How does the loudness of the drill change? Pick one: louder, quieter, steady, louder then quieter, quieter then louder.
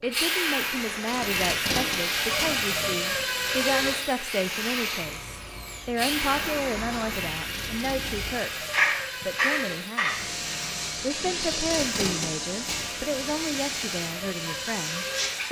quieter.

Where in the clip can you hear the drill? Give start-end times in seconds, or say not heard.
0.0-15.4.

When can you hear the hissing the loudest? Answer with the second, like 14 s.
9 s.